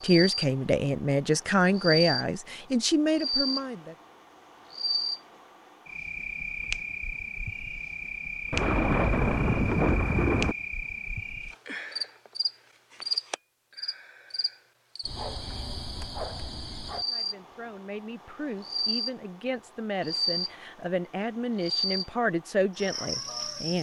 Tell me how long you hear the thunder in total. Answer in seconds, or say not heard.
2 s.